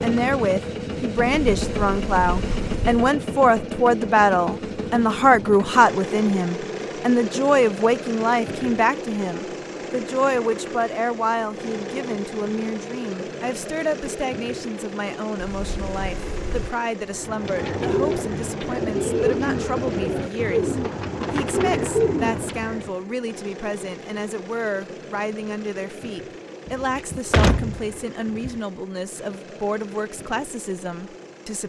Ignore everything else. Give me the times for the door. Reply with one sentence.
You can hear the door from 1.4 to 3.0 s, from 15.4 to 16.7 s and from 26.6 to 28.6 s.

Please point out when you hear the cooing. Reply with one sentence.
You can hear the cooing from 17.1 to 22.9 s.